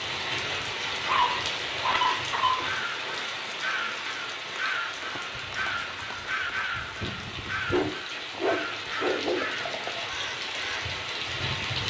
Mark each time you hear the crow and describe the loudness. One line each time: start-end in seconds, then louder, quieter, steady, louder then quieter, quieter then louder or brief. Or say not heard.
2.5-11.8 quieter.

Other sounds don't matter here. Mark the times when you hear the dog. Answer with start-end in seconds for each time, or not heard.
1.1-2.7, 7.7-9.5.